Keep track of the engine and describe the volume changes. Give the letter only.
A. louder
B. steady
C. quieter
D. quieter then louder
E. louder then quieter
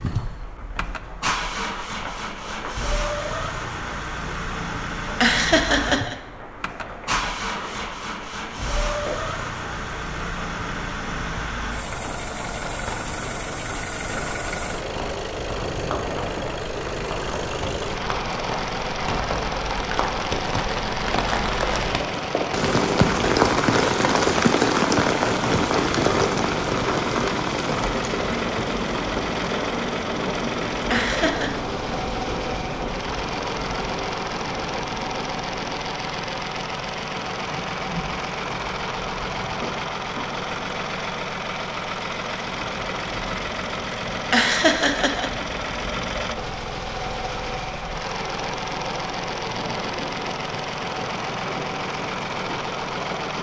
B.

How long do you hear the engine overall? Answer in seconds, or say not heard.
53 s.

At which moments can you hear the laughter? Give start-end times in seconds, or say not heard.
5.2-6.2, 30.9-31.6, 44.3-45.3.